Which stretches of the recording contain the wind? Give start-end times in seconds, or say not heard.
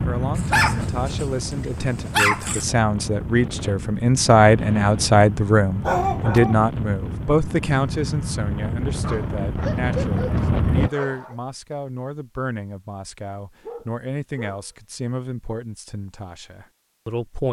0.0-10.9.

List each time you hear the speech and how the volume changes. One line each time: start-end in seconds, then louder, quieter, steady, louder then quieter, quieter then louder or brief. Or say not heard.
0.1-17.4 louder then quieter.